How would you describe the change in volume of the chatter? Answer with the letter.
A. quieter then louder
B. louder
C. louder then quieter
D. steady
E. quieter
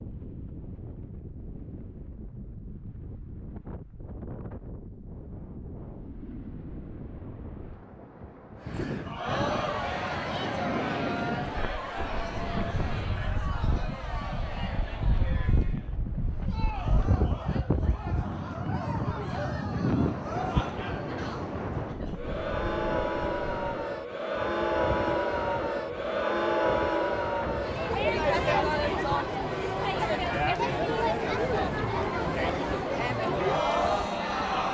A.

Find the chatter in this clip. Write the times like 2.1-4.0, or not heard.
8.6-34.6.